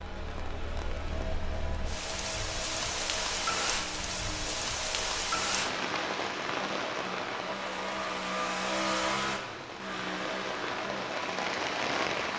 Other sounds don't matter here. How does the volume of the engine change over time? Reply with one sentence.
The volume of the engine goes up.